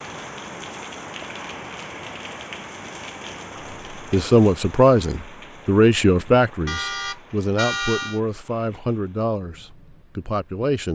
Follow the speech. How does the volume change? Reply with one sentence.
The loudness of the speech goes down.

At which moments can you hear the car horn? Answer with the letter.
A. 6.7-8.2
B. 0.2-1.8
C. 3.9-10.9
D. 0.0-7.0
A.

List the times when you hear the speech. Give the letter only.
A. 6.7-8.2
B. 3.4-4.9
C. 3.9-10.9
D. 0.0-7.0
C.